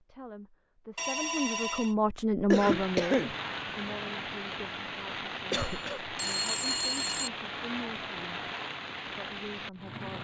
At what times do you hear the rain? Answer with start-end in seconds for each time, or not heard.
2.5-10.1.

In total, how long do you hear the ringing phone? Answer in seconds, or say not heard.
3 s.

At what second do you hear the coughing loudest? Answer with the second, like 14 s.
3 s.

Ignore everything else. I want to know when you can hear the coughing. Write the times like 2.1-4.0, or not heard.
2.5-3.4, 5.5-6.2.